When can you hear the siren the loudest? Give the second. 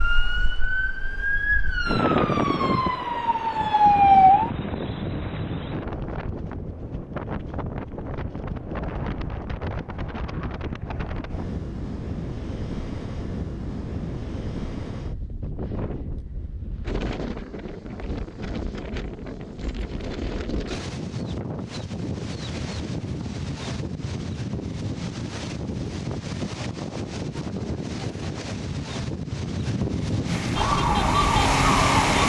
4 s.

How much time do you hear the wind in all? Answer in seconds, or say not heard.
32 s.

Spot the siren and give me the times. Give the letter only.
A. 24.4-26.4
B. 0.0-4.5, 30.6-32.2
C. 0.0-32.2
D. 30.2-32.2
B.